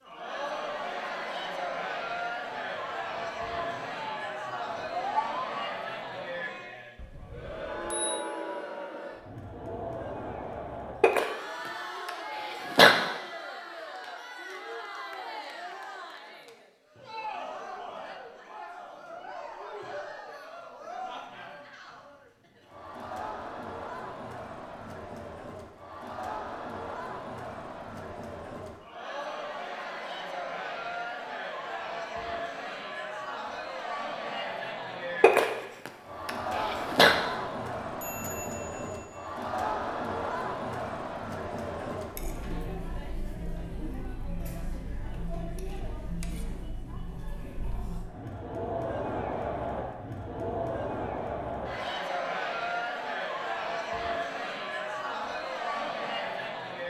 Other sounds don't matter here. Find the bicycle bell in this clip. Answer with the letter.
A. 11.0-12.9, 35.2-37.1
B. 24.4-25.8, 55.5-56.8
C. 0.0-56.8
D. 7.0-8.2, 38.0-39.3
D.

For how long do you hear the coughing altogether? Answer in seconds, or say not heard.
4 s.